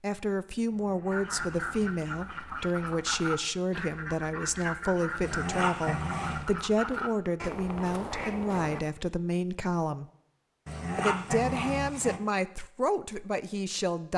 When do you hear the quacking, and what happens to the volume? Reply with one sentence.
You can hear the quacking from 1.1 to 8.8 s, at a steady volume.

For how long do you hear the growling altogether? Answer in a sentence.
The growling can be heard for 5 seconds in total.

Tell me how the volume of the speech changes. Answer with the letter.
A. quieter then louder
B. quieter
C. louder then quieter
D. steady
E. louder
D.